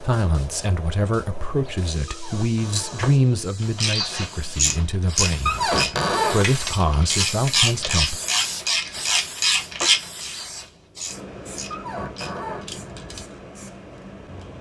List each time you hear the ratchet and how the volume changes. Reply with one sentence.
The ratchet can be heard from 3.8 to 13.2 s, getting quieter.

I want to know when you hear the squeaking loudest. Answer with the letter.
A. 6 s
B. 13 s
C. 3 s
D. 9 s
A.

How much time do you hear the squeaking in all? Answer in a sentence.
You can hear the squeaking for 3 seconds altogether.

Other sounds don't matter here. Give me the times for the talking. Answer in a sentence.
The talking can be heard from 0.0 to 8.2 s.